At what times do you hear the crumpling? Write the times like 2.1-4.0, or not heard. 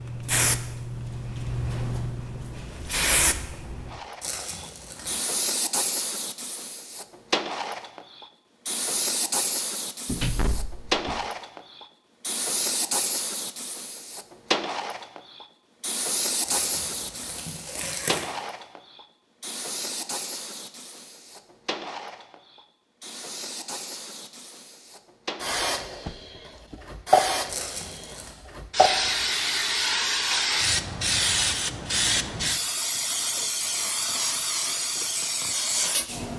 4.2-5.2, 16.4-18.3, 27.4-28.4.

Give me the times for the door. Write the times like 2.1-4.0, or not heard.
10.1-11.2, 26.1-26.8.